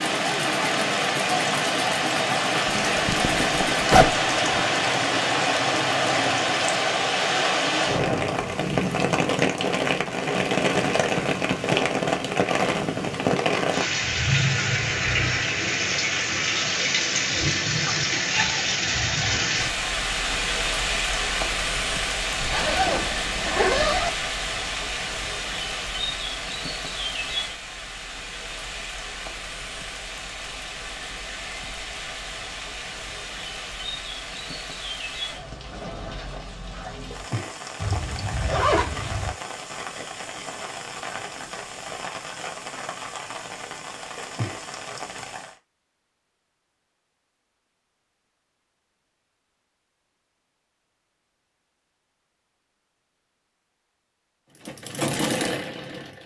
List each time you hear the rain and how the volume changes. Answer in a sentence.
The rain can be heard from 0.0 to 45.6 s, getting quieter.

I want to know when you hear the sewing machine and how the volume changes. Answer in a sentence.
You can hear the sewing machine from 0.0 to 6.9 s, at a steady volume; and briefly from 54.6 to 56.2 s.